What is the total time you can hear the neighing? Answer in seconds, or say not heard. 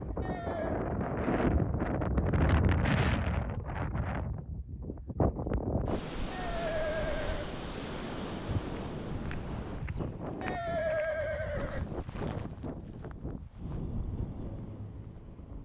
3 s.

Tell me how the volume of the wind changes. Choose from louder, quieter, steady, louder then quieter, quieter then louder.
quieter.